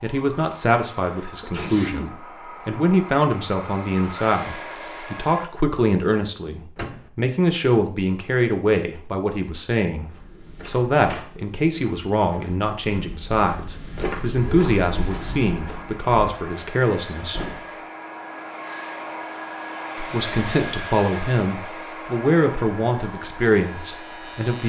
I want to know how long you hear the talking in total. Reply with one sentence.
The talking can be heard for 22 seconds in total.